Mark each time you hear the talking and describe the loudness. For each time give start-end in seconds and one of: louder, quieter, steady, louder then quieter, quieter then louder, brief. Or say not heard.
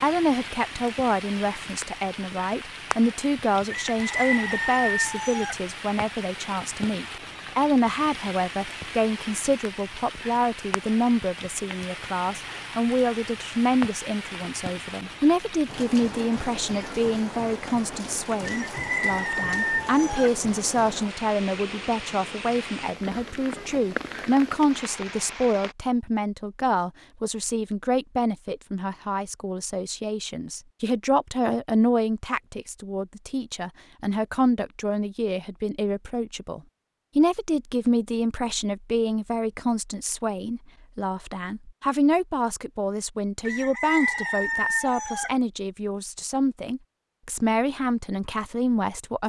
0.0-49.2 steady.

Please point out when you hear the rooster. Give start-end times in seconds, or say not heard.
3.7-5.5, 18.4-20.3, 43.5-45.3.